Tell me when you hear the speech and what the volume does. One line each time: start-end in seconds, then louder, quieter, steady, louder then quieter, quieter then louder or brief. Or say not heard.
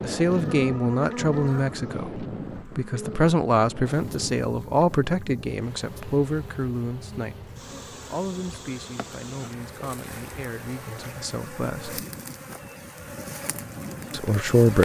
0.0-12.1 quieter
14.1-14.8 brief.